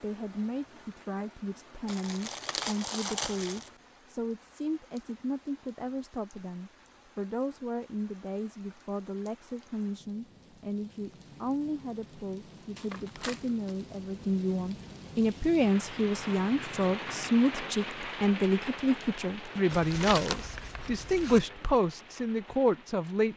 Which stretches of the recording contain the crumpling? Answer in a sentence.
The crumpling can be heard from 1.9 to 3.7 s, from 12.8 to 13.8 s and from 19.7 to 21.4 s.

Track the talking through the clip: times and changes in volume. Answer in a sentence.
You can hear the talking from 0.0 to 23.3 s, getting louder.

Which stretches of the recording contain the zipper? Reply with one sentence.
You can't hear the zipper here.